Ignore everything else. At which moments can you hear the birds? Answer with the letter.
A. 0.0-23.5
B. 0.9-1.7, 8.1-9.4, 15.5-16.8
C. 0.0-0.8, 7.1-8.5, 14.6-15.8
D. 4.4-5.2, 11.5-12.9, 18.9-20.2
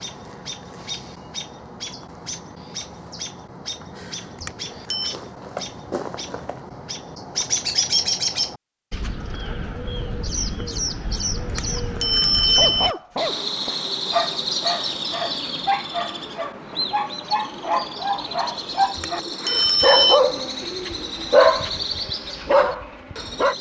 A.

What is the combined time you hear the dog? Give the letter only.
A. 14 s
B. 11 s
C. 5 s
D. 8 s
B.